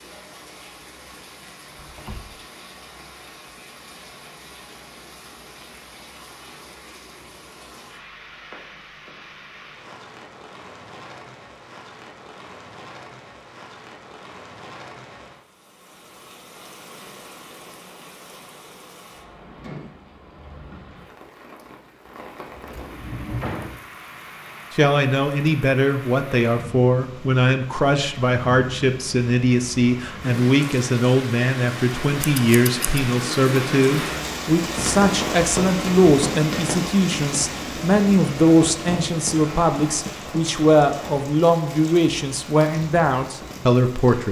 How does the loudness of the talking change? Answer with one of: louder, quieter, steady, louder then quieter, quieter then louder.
steady.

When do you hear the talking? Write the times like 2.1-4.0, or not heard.
24.7-44.2.